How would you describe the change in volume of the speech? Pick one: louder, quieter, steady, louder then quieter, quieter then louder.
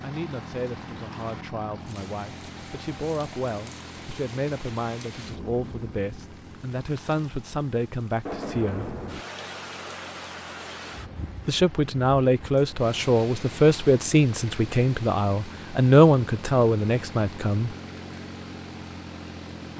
louder.